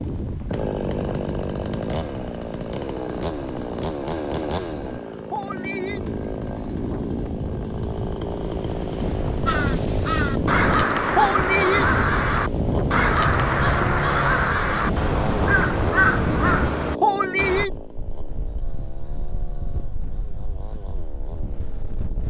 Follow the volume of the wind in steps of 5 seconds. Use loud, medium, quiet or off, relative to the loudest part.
medium, medium, loud, loud, quiet.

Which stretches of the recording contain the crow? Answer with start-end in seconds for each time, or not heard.
9.4-17.6.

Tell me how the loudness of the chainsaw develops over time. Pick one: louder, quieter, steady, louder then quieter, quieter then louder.
quieter.